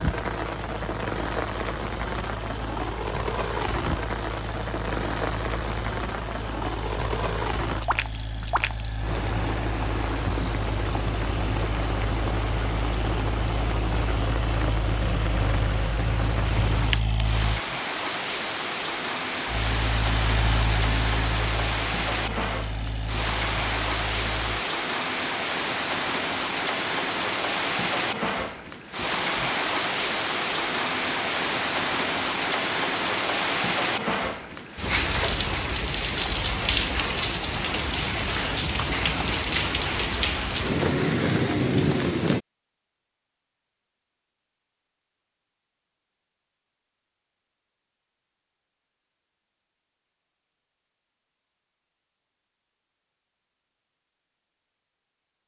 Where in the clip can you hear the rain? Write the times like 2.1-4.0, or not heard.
0.0-42.4.